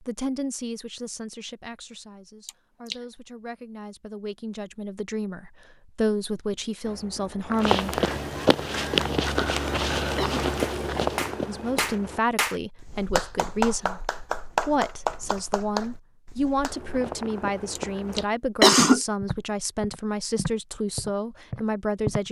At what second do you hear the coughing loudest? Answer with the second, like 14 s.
19 s.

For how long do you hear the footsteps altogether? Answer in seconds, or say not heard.
11 s.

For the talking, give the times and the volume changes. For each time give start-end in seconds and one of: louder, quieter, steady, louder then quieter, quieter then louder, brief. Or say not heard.
0.0-8.0 quieter then louder
11.4-22.2 steady.